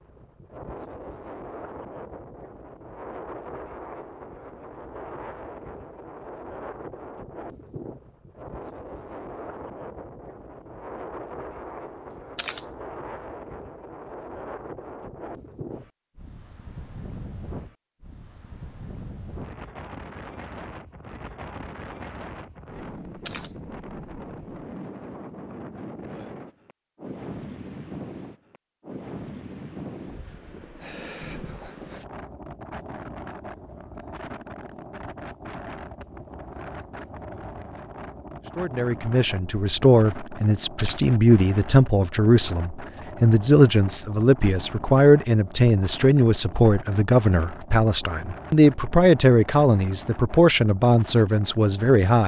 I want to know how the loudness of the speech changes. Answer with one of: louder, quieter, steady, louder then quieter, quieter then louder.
steady.